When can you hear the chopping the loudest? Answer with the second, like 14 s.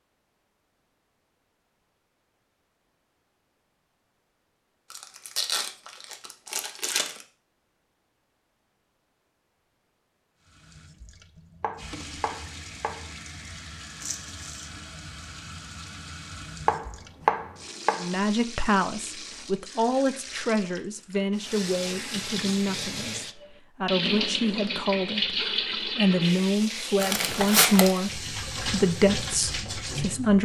17 s.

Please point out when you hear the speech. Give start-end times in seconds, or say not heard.
18.0-30.4.